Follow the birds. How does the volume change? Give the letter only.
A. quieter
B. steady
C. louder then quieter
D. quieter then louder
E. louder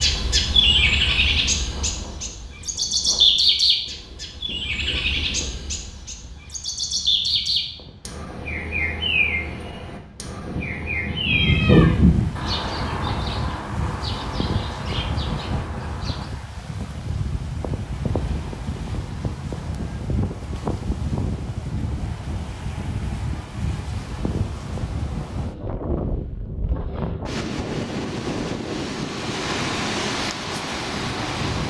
A.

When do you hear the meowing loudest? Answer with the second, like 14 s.
12 s.